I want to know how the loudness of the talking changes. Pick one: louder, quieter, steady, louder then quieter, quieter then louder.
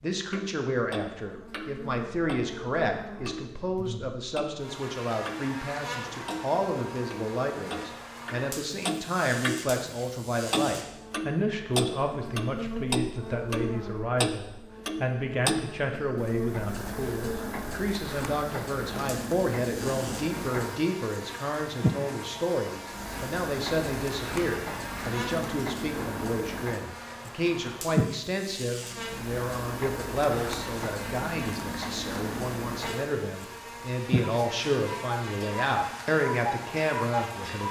steady.